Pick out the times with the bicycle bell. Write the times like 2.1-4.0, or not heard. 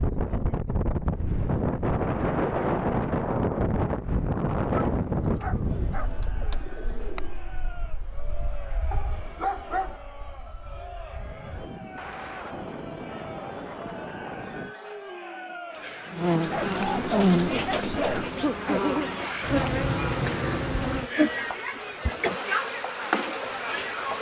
not heard.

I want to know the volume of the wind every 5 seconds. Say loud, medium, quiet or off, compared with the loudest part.
loud, medium, quiet, off, off.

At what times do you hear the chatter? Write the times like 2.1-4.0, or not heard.
5.7-24.1.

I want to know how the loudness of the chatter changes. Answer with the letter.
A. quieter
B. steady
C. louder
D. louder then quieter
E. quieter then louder
C.